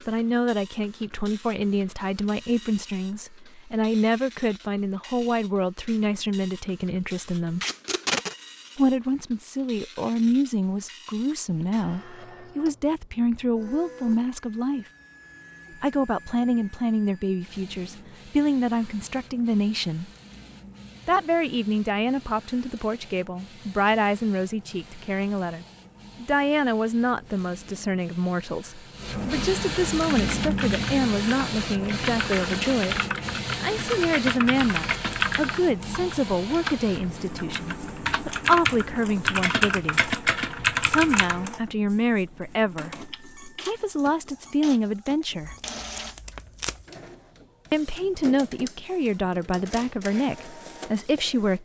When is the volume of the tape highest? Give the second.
8 s.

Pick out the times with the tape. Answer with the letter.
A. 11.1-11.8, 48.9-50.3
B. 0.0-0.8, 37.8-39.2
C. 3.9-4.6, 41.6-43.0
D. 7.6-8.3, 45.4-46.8
D.